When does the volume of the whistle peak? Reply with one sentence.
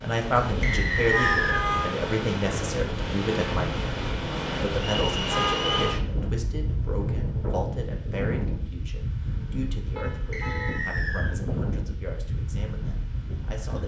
The volume of the whistle peaks at 1 second.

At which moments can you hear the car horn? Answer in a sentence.
The car horn can be heard from 1.1 to 1.9 s, from 5.2 to 6.0 s and from 9.9 to 10.8 s.